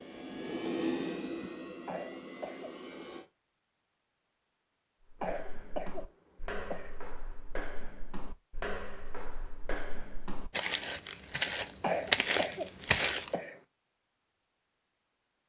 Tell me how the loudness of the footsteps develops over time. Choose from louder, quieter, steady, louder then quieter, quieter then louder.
louder.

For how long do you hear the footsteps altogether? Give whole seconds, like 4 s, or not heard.
8 s.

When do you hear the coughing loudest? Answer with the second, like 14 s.
12 s.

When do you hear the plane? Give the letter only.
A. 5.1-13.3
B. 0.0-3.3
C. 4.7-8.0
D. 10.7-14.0
B.